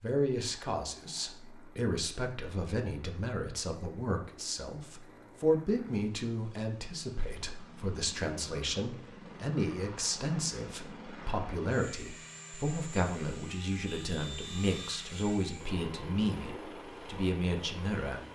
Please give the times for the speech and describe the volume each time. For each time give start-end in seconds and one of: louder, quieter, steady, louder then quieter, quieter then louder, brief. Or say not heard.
0.0-18.2 steady.